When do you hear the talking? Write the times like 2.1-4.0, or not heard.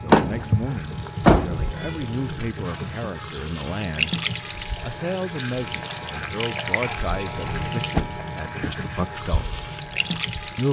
0.0-4.2, 4.8-9.6.